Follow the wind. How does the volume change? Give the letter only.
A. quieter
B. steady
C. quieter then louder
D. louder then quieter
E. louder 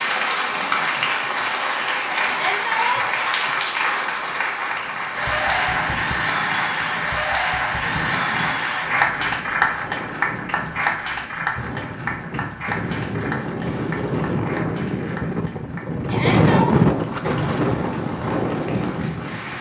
E.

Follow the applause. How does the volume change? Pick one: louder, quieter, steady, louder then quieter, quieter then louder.
quieter.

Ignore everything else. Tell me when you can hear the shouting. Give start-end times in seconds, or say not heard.
2.2-3.1, 16.1-16.8.